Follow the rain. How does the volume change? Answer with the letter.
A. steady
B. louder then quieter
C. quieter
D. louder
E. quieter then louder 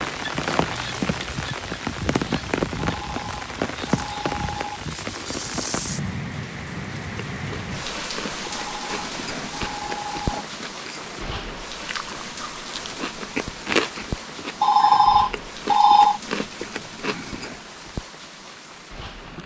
C.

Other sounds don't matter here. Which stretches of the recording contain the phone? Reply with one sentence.
The phone can be heard from 3.0 to 4.8 s, from 8.4 to 10.4 s and from 14.6 to 16.2 s.